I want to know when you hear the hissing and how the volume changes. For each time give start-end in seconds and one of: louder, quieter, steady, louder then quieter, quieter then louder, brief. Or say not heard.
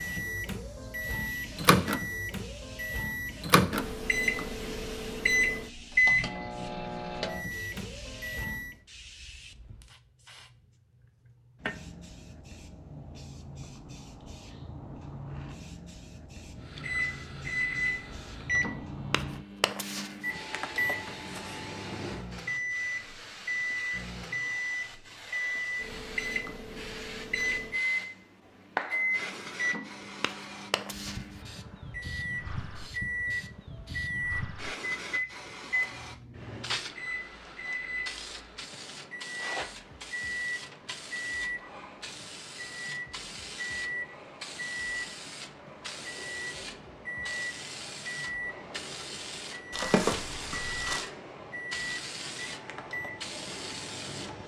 0.0-54.4 louder.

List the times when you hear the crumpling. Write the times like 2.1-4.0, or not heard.
49.7-51.0.